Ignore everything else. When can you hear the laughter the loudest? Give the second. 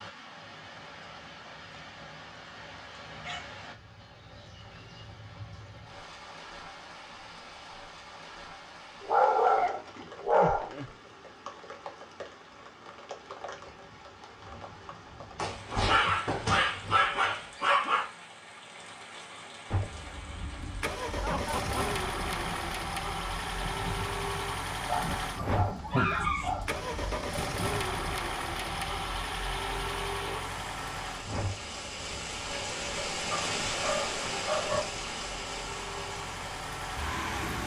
26 s.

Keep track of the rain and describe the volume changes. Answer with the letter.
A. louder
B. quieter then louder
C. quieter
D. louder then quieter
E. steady
A.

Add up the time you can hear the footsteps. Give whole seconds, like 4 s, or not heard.
not heard.